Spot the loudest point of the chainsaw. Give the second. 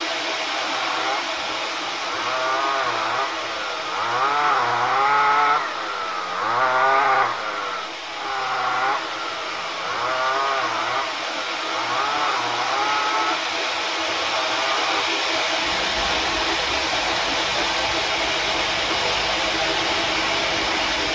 5 s.